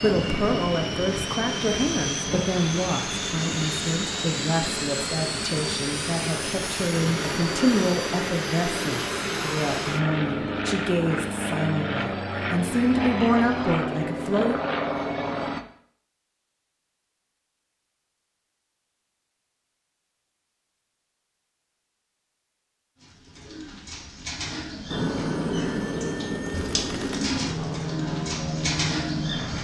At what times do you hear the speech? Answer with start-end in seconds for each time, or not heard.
0.0-14.6.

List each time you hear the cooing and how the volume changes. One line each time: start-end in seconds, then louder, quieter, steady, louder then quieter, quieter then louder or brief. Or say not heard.
23.0-29.5 louder.